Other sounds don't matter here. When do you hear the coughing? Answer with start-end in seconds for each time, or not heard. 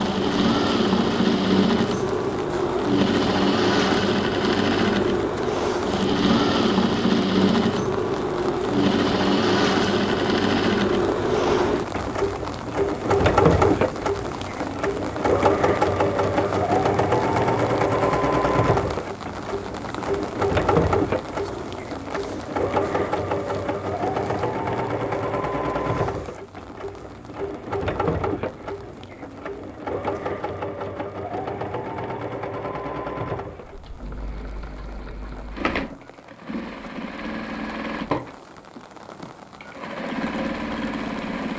not heard.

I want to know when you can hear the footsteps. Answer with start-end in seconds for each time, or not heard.
not heard.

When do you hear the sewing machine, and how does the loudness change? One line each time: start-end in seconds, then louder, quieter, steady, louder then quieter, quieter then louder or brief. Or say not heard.
0.0-41.5 quieter.